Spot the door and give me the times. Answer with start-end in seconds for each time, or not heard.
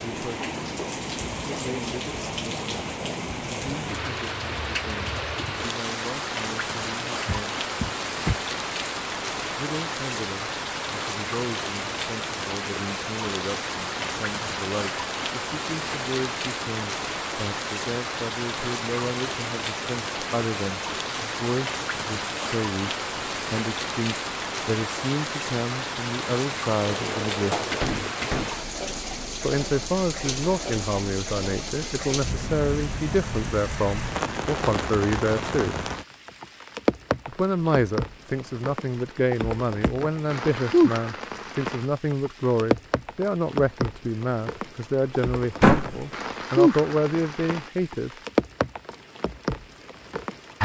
7.2-8.4, 26.9-28.6, 45.6-46.0.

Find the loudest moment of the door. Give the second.
46 s.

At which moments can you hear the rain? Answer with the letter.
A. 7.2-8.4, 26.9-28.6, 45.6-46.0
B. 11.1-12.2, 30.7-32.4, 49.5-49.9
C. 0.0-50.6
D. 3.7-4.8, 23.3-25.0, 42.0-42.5
C.